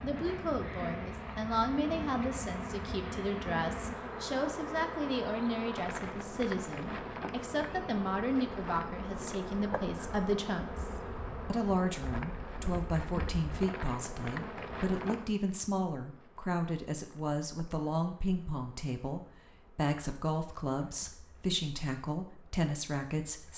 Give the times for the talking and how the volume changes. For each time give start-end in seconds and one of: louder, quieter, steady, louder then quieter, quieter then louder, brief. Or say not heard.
0.0-23.5 steady.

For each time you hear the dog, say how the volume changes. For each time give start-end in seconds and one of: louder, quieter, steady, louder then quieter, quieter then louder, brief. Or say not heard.
not heard.